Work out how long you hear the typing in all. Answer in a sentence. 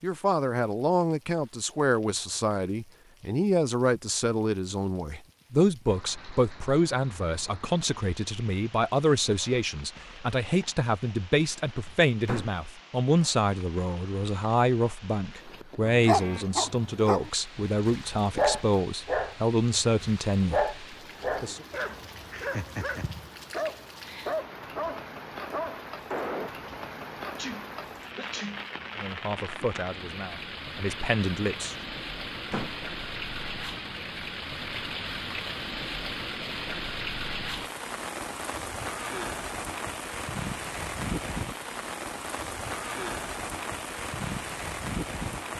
You can't hear the typing here.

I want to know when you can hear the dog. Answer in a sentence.
You can hear the dog from 15.8 to 26.5 s.